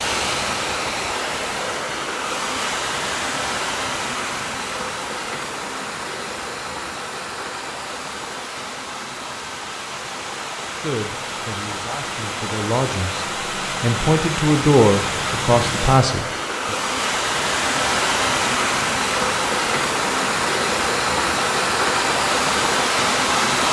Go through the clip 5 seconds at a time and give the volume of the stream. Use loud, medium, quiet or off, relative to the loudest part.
medium, medium, medium, loud, loud.